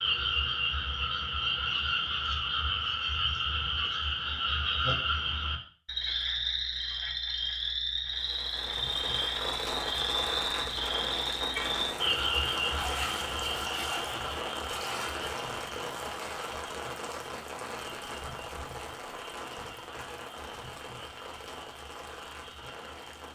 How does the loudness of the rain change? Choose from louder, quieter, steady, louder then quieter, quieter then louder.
quieter.